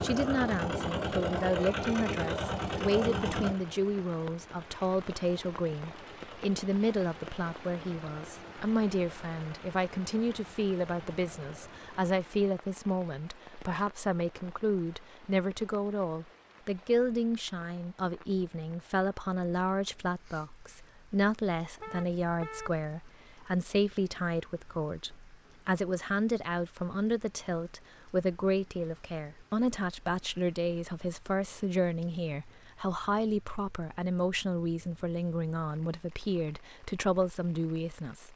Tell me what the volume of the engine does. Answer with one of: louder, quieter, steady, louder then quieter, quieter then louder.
quieter.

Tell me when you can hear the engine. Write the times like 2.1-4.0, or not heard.
0.0-12.2.